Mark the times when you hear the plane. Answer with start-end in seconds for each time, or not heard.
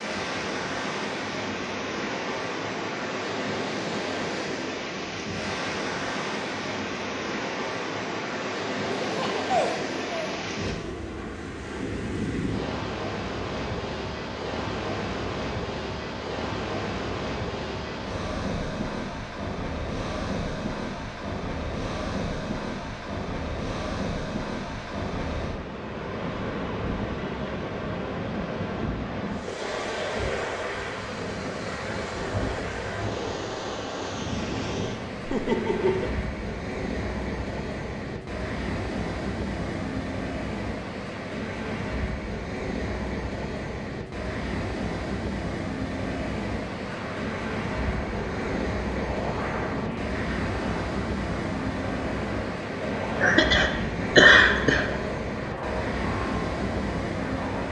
46.9-57.6.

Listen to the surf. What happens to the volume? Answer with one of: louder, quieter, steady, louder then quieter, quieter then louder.
steady.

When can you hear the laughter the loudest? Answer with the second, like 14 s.
54 s.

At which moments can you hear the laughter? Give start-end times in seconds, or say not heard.
9.0-10.4, 35.2-36.1, 53.2-54.9.